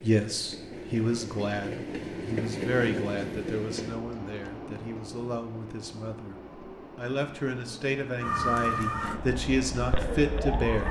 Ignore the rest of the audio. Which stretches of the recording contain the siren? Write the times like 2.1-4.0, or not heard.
8.2-10.8.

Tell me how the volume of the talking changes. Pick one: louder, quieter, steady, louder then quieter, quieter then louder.
quieter then louder.